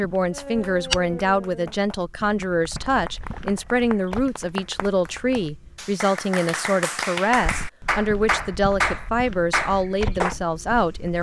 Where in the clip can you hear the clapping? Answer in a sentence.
The clapping can be heard from 0.3 to 10.3 s.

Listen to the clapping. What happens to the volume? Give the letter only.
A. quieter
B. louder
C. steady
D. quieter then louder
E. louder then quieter
B.